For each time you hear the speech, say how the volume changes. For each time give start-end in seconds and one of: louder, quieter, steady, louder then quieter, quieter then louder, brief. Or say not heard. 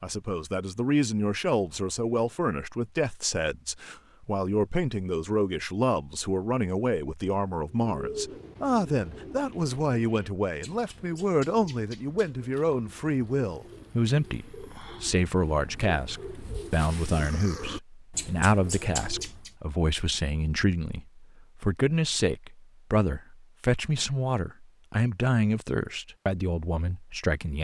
0.0-27.5 steady.